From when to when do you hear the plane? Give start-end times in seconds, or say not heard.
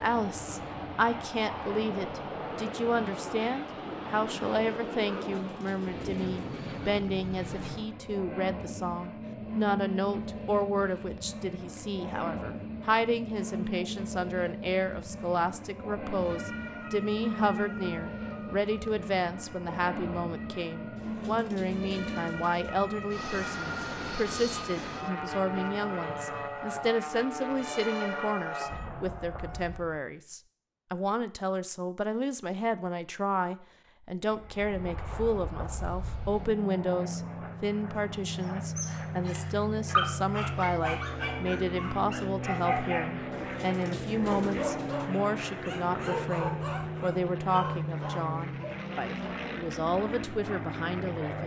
0.0-30.0, 34.3-51.4.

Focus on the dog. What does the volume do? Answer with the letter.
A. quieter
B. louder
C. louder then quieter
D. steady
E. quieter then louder
A.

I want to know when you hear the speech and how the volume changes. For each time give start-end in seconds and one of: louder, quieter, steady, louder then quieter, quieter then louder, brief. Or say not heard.
0.0-51.4 steady.